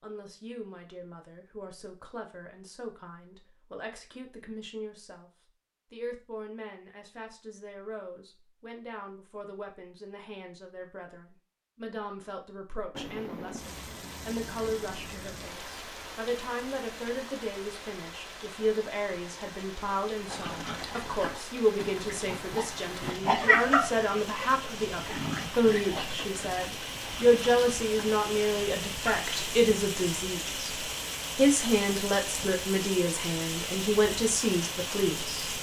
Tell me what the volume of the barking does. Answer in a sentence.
The loudness of the barking goes up, then down.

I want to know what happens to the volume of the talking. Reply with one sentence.
The loudness of the talking goes up.